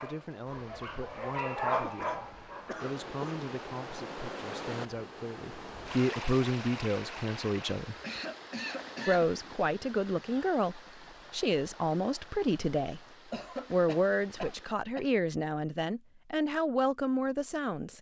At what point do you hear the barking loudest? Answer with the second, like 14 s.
2 s.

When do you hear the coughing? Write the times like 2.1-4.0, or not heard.
1.7-3.5, 8.0-9.3, 13.3-15.1.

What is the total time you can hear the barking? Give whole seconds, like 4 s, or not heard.
3 s.